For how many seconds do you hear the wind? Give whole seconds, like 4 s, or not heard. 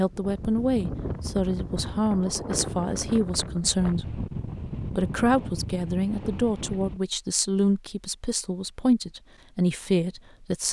7 s.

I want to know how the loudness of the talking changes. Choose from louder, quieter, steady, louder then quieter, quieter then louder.
steady.